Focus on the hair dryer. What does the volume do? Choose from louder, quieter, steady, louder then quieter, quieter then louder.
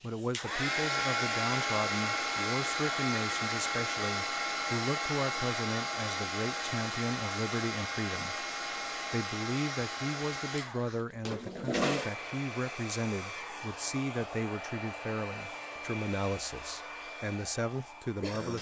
quieter.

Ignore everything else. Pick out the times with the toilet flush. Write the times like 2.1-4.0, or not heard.
11.2-12.2.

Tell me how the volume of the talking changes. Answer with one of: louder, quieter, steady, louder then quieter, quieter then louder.
steady.